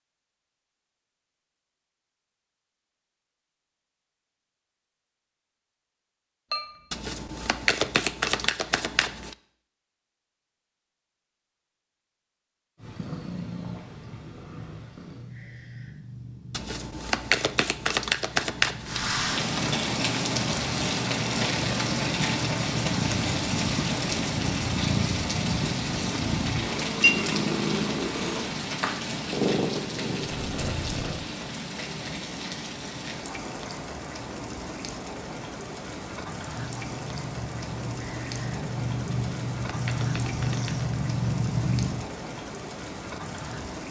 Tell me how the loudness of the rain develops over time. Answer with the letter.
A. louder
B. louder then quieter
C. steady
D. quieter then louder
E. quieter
E.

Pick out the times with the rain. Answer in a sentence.
You can hear the rain from 18.8 to 43.8 s.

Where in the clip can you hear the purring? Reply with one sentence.
You can hear the purring from 12.8 to 31.2 s and from 36.5 to 42.0 s.